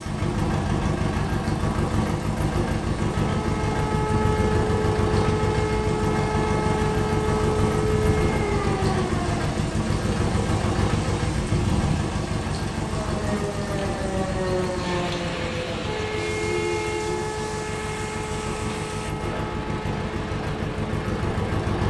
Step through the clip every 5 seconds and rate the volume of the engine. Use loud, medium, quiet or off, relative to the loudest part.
loud, loud, loud, medium, loud.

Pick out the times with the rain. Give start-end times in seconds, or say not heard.
0.0-21.7.